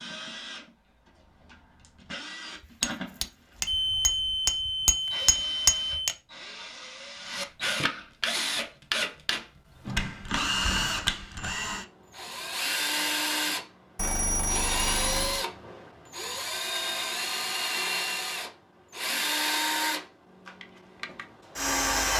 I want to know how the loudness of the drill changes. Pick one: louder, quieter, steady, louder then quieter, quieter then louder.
louder.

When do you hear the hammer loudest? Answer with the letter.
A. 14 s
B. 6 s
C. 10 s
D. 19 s
B.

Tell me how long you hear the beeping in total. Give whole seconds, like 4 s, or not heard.
4 s.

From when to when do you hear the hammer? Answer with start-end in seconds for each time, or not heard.
2.6-6.2.